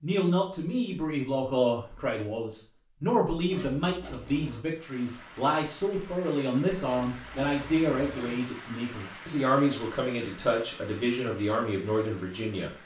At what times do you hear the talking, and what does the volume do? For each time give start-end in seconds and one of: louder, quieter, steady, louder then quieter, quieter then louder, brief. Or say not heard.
0.0-12.8 steady.